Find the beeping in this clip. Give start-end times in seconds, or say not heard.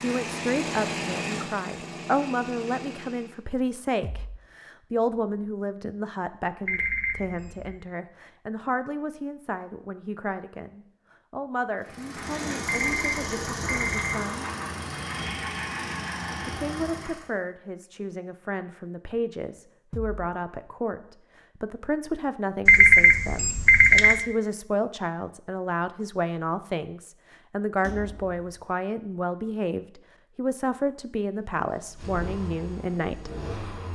6.7-7.7, 12.7-14.2, 22.6-24.2.